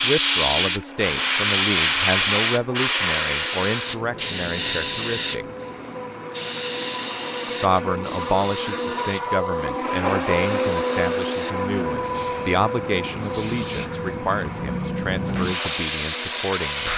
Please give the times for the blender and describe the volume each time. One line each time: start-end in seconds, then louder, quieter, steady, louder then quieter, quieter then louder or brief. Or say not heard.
0.0-16.9 louder then quieter.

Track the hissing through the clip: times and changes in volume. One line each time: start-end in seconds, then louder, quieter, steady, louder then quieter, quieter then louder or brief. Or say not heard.
0.0-16.9 quieter then louder.